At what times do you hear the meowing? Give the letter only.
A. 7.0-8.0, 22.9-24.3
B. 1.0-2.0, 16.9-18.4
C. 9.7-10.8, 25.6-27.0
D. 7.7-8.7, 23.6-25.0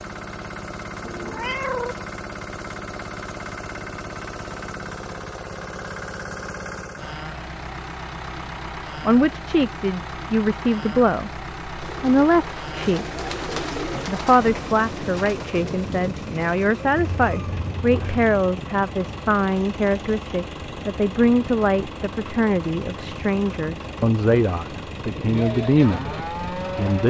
B.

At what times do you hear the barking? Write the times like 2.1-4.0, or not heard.
not heard.